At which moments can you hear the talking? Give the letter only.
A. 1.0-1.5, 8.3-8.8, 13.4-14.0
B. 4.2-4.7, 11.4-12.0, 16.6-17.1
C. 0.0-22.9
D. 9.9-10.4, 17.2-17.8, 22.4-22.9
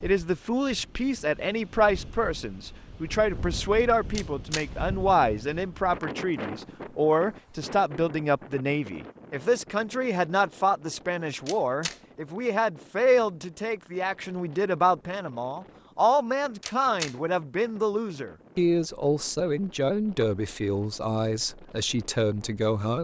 C.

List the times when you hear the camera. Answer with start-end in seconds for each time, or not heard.
4.2-4.7, 11.4-12.0, 16.6-17.1.